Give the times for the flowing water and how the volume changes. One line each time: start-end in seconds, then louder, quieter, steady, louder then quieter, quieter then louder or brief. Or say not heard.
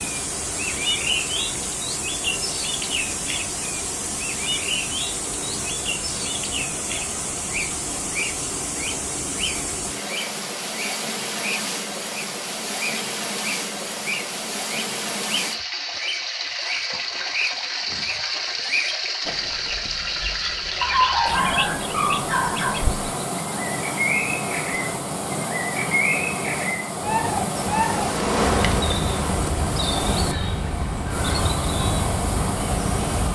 0.0-33.2 steady.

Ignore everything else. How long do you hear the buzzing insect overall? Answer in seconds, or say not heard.
2 s.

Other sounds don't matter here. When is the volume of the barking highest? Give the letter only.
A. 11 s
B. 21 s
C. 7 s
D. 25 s
B.